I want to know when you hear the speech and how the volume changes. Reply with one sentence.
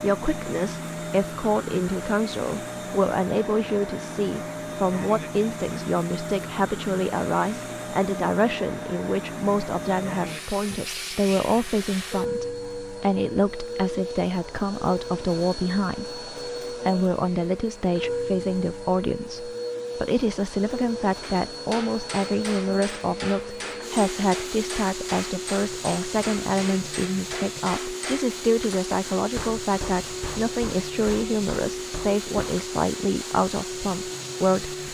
The speech can be heard from 0.0 to 34.8 s, at a steady volume.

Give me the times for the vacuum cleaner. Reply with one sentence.
The vacuum cleaner can be heard from 0.0 to 34.8 s.